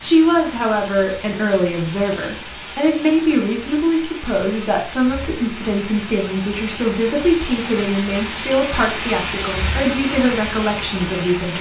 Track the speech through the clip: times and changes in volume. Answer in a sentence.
You can hear the speech from 0.0 to 11.5 s, at a steady volume.